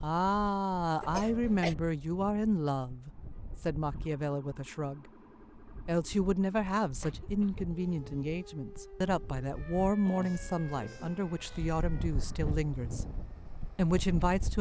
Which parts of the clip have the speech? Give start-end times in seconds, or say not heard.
0.0-5.0, 5.8-13.1, 13.8-14.5.